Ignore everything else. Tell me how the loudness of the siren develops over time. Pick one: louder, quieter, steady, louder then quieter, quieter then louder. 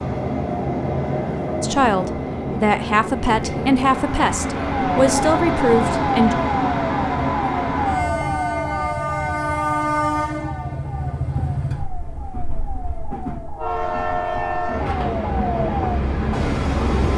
quieter then louder.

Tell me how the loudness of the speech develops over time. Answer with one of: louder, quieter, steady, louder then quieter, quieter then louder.
steady.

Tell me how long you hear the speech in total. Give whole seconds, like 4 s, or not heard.
5 s.